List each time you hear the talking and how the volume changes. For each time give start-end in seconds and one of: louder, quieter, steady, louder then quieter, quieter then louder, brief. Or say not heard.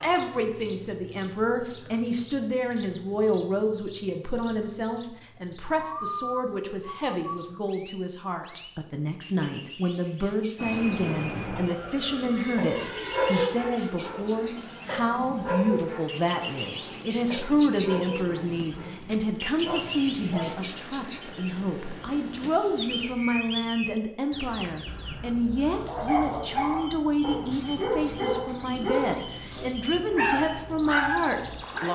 0.0-31.9 steady.